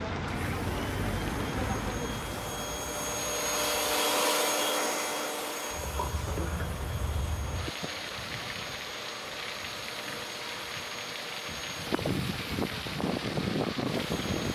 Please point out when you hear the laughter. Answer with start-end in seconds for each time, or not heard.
not heard.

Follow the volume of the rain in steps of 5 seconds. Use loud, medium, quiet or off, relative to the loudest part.
loud, medium, loud.